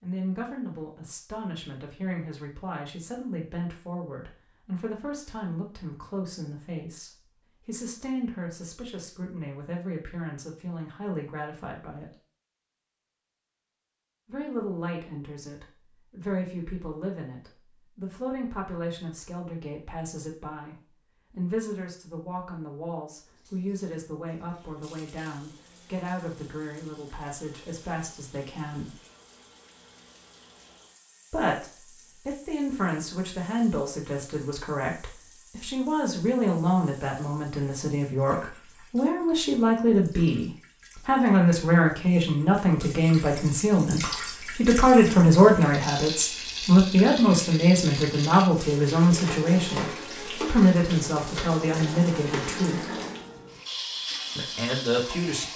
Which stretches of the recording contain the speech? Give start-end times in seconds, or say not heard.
0.0-12.1, 14.2-28.9, 31.3-53.0, 54.4-55.5.